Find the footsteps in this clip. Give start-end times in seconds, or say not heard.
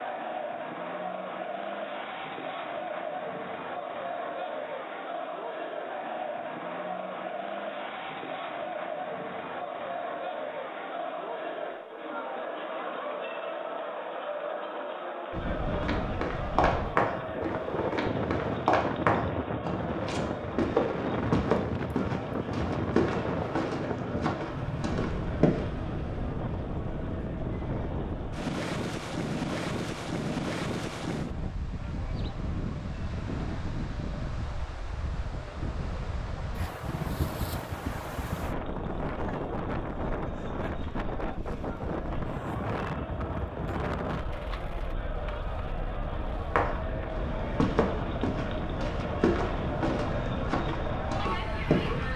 15.7-25.6, 46.5-52.1.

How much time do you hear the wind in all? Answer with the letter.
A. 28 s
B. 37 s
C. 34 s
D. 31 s
B.